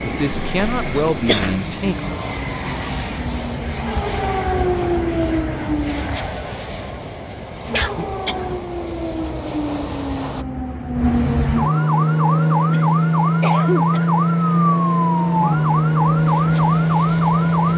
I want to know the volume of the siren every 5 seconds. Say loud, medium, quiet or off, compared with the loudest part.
medium, medium, loud, loud.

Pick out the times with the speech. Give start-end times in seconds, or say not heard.
0.0-1.9.